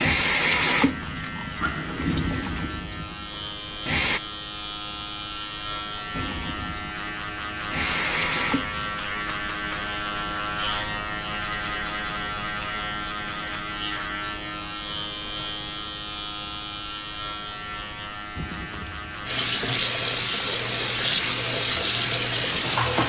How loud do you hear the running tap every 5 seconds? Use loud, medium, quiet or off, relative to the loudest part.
loud, medium, off, loud, loud.